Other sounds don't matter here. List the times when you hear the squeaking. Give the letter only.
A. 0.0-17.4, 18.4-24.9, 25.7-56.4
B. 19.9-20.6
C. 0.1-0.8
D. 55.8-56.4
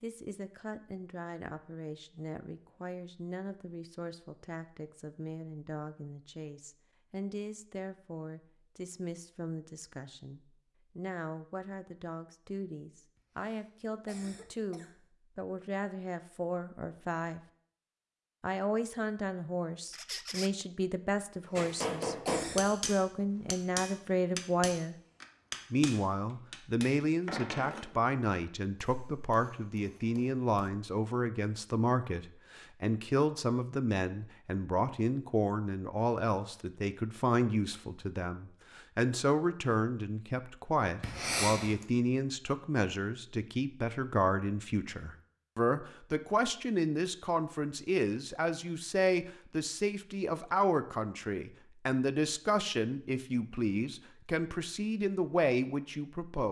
B.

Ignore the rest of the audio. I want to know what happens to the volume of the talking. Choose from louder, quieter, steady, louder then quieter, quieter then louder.
louder.